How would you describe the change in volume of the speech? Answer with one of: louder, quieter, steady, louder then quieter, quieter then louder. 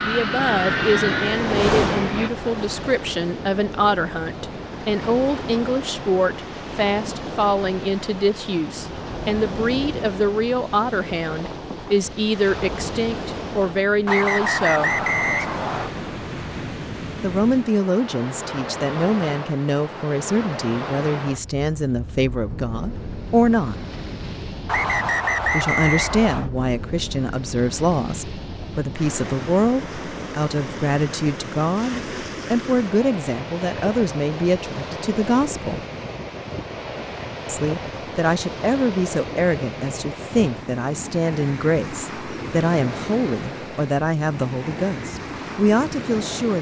steady.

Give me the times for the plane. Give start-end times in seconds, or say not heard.
0.0-2.3.